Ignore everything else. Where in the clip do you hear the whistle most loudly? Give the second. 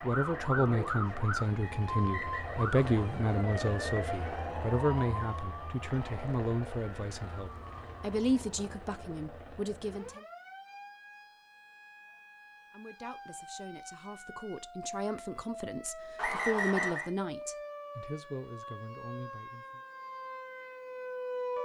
17 s.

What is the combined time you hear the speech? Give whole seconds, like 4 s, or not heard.
17 s.